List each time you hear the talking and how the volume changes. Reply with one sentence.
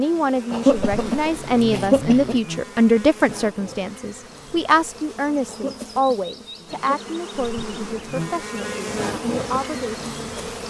You can hear the talking from 0.0 to 10.3 s, getting quieter.